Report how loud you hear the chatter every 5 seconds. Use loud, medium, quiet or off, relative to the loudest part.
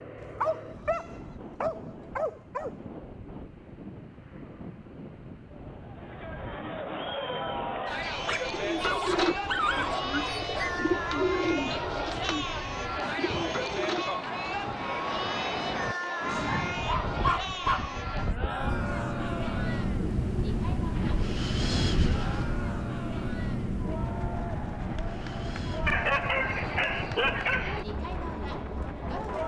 off, loud, loud, loud, medium, medium.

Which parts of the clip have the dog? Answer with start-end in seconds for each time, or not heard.
0.2-2.8, 8.1-10.8, 16.3-17.9, 25.9-27.9.